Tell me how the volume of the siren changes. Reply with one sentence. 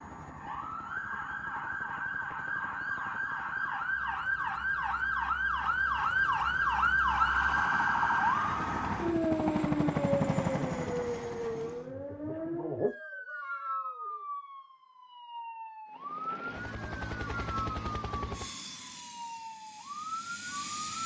The volume of the siren goes up, then down.